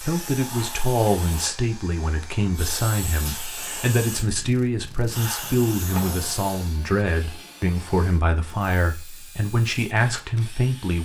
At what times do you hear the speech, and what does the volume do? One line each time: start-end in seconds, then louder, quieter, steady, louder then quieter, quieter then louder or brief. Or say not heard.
0.0-10.9 steady.